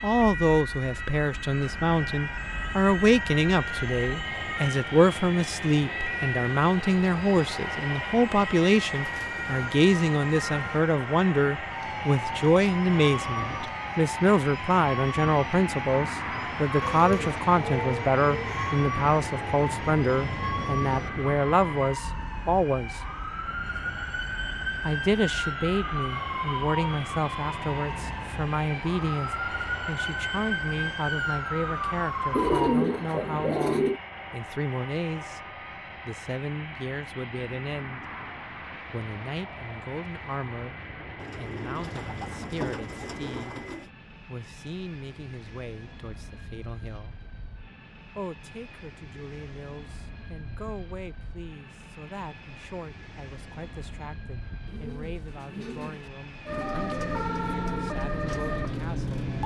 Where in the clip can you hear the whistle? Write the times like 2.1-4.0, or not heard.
not heard.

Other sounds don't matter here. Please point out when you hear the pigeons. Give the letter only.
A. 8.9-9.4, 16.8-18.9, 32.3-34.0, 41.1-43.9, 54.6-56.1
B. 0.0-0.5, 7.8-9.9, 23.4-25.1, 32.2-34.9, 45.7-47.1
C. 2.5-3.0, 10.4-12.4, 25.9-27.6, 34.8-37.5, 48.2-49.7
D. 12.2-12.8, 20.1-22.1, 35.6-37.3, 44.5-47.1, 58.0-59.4
A.